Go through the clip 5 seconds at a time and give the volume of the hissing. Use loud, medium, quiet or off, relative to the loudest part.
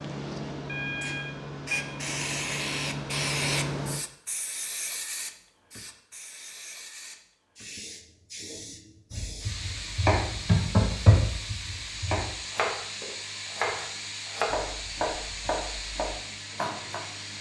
loud, medium, medium, medium.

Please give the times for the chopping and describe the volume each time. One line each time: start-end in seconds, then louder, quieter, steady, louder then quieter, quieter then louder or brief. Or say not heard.
9.1-17.0 quieter.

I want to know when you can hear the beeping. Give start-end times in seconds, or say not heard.
0.7-1.9.